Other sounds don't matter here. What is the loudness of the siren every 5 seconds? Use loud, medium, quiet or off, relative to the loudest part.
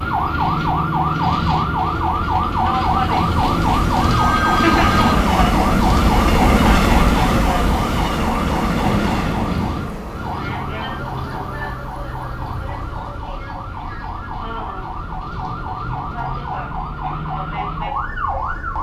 loud, loud, medium, medium.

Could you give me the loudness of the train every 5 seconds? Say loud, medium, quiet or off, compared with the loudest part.
medium, loud, quiet, quiet.